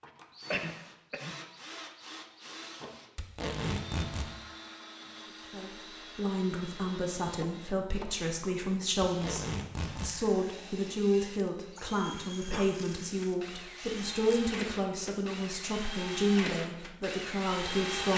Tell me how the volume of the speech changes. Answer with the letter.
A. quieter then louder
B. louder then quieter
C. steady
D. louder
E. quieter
C.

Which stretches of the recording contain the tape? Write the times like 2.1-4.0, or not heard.
3.1-4.3, 9.0-10.2, 12.7-14.4.